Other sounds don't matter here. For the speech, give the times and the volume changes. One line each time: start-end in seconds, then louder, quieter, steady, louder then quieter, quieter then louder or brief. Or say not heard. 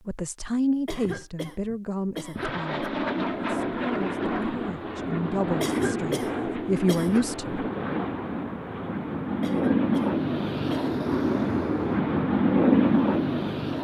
0.1-7.7 quieter then louder.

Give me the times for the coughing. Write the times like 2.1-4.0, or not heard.
0.8-2.9, 5.6-7.3, 9.4-10.9.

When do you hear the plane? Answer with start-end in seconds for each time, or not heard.
2.4-13.7.